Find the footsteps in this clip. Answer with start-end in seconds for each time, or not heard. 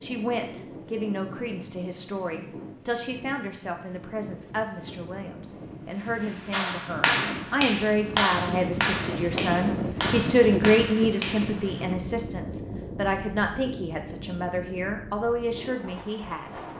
not heard.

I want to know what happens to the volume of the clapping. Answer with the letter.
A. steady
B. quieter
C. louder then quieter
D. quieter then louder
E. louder
B.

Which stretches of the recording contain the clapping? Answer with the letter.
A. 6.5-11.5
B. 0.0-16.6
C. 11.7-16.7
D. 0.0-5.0
A.